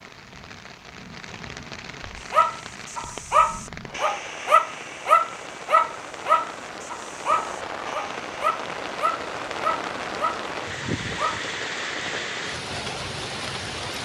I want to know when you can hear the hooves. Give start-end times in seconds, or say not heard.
not heard.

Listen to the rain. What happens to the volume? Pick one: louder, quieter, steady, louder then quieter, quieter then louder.
louder.